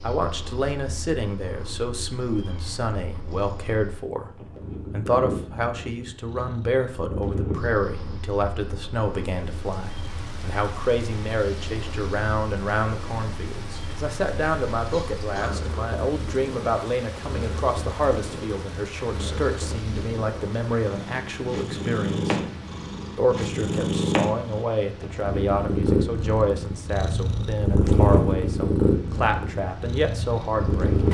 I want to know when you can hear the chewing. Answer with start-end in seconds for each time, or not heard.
not heard.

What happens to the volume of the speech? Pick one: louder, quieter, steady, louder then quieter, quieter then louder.
steady.